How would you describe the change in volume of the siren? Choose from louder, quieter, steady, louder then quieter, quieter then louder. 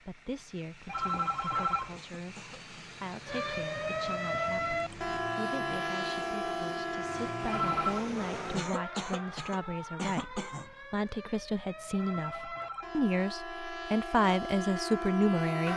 quieter then louder.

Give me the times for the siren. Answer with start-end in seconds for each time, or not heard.
3.2-15.7.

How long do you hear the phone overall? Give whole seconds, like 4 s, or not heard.
3 s.